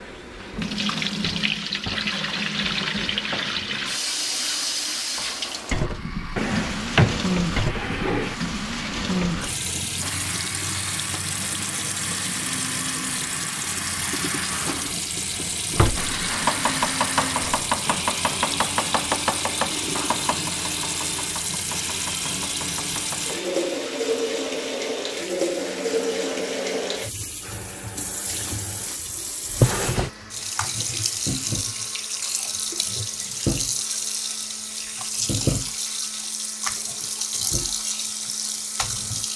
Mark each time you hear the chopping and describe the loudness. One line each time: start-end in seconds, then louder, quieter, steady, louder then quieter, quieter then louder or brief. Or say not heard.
16.3-23.4 quieter.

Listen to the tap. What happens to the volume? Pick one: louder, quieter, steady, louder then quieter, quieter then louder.
steady.